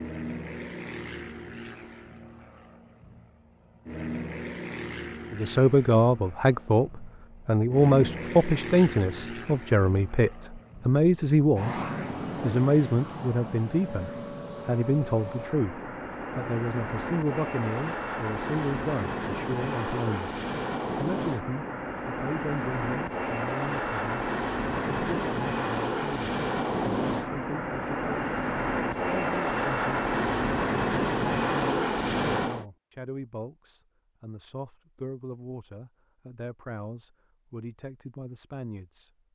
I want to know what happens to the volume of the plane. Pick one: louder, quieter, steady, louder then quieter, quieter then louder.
louder.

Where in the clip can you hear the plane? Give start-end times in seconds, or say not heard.
0.0-32.6.